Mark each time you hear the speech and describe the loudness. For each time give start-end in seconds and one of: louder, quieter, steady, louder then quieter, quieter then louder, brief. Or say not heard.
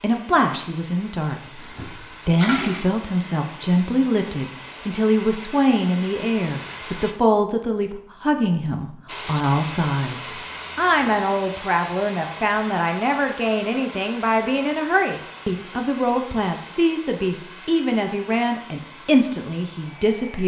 0.0-20.4 steady.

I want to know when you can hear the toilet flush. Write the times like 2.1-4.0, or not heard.
1.6-2.9.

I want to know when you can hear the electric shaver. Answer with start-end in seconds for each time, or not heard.
not heard.